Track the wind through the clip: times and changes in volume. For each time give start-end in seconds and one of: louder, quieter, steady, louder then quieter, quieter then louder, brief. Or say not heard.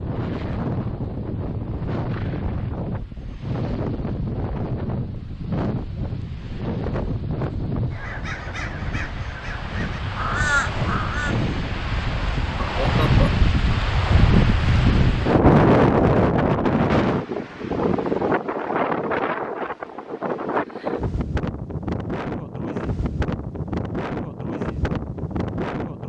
0.0-26.0 louder then quieter.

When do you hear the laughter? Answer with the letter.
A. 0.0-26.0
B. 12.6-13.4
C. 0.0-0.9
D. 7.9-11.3
B.